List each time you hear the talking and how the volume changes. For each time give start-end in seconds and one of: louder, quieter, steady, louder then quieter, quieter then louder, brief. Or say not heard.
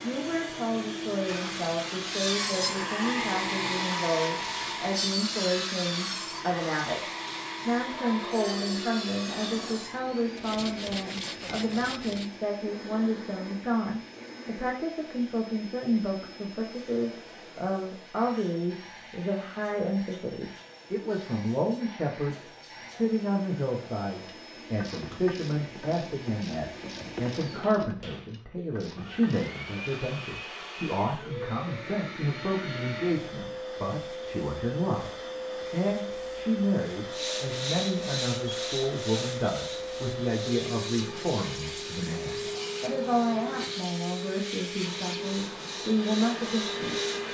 0.0-47.0 steady.